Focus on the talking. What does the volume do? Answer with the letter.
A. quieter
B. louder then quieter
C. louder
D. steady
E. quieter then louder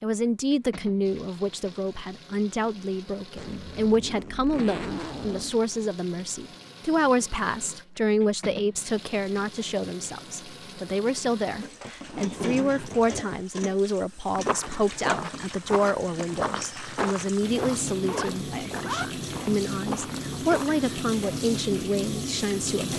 D.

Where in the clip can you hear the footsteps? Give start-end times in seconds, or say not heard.
14.3-21.0.